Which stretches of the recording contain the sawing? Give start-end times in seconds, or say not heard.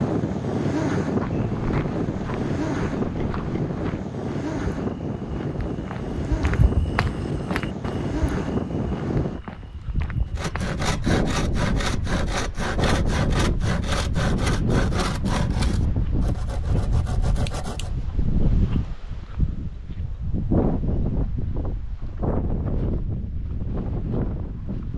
10.2-17.9.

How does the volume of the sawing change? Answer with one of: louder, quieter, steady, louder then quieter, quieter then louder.
quieter.